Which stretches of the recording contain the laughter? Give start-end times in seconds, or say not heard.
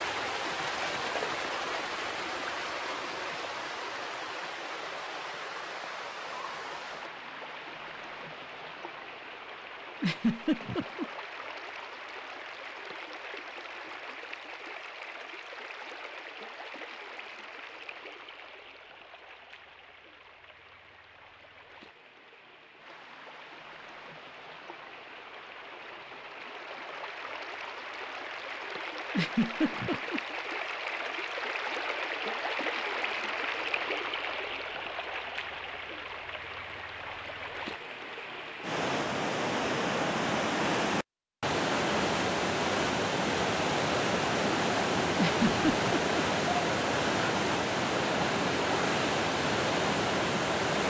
10.0-11.1, 29.1-30.2, 45.1-46.2.